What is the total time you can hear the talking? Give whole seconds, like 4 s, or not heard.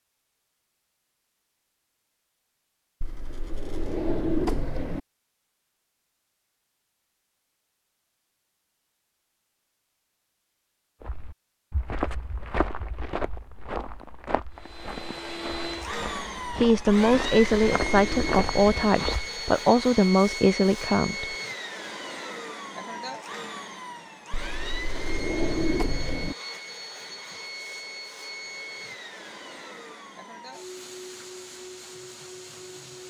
5 s.